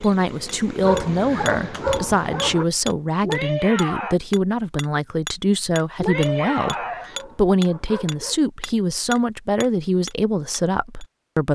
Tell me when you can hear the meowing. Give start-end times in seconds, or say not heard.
3.2-4.2, 6.0-7.2.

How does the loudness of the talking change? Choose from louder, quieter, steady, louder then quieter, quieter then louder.
steady.